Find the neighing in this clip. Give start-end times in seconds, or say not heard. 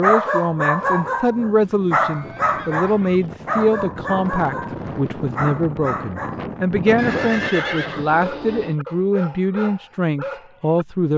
2.0-3.4, 7.0-8.8.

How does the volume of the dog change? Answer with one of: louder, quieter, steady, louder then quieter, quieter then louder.
quieter.